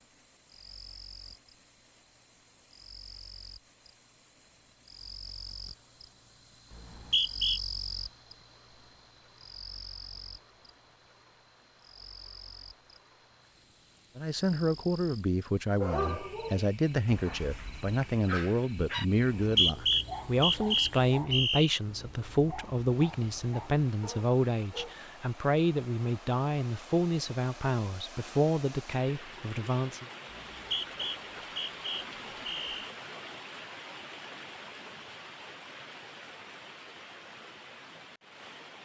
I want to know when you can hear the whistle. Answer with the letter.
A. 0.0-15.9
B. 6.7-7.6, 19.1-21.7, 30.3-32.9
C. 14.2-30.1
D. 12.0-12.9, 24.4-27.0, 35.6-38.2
B.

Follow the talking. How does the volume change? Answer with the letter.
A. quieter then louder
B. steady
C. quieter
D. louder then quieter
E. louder
B.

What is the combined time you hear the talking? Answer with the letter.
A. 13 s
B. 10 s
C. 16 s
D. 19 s
C.